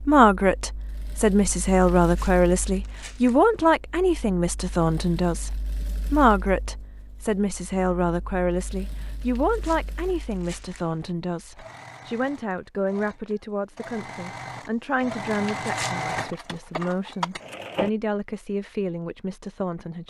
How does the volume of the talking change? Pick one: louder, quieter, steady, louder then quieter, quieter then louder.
quieter.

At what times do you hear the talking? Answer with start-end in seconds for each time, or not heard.
0.0-20.0.